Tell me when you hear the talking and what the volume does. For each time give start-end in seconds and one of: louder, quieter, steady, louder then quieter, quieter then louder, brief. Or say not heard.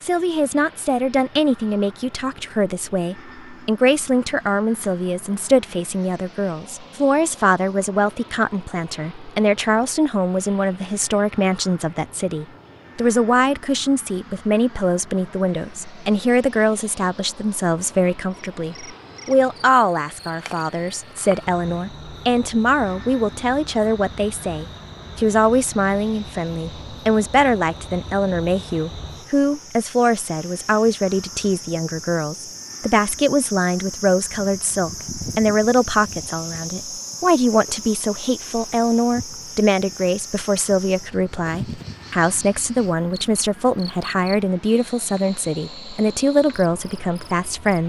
0.0-47.8 steady.